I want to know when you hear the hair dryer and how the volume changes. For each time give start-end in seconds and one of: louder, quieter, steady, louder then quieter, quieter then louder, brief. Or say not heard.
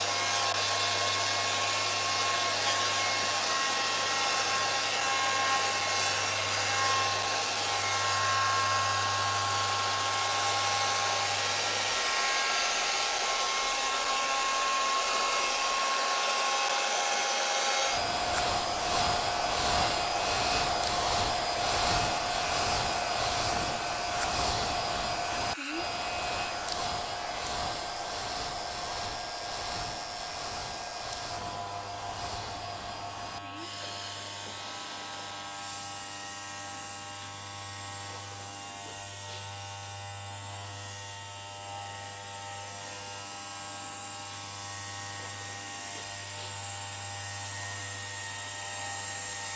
0.0-49.5 quieter.